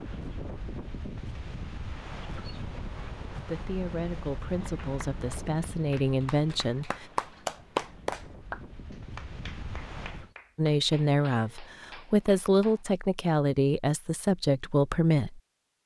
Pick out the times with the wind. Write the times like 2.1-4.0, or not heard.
0.0-10.3.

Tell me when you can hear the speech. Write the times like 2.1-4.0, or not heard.
3.5-7.0, 10.6-15.4.